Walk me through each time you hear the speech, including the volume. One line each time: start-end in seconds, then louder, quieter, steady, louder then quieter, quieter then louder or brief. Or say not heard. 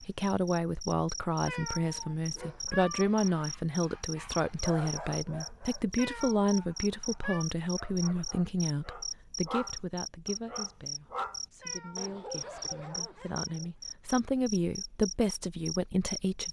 0.0-16.4 quieter then louder.